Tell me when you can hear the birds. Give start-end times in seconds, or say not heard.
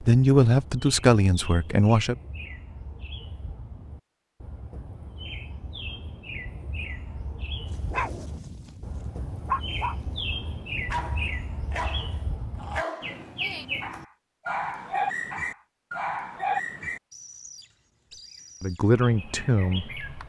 0.0-20.2.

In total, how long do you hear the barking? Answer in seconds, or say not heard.
9 s.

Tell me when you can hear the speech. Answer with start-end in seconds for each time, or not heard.
0.0-2.1, 18.6-19.9.